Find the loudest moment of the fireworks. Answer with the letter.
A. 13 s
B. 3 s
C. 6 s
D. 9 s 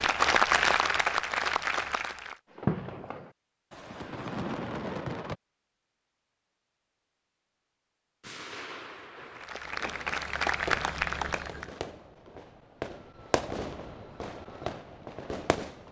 B.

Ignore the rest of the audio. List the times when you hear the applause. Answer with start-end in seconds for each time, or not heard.
0.0-2.4, 9.3-11.8.